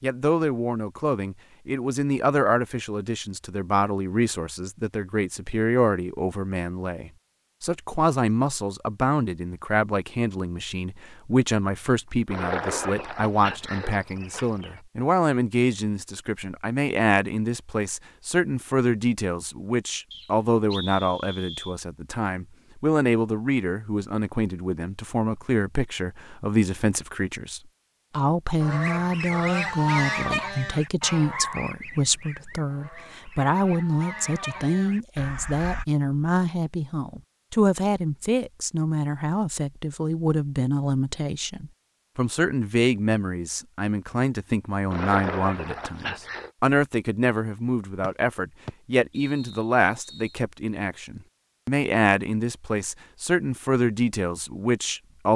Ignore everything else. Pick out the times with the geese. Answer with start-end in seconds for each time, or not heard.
28.6-35.9.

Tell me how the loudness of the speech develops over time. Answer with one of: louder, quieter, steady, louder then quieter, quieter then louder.
steady.